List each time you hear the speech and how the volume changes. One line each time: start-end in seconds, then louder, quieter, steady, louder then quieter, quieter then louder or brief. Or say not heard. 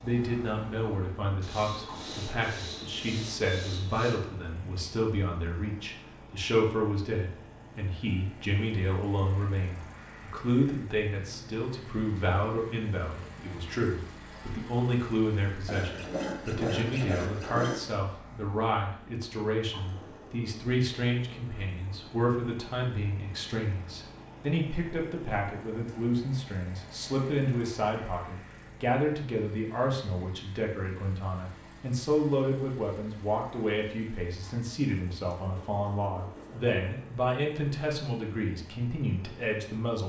0.0-40.0 steady.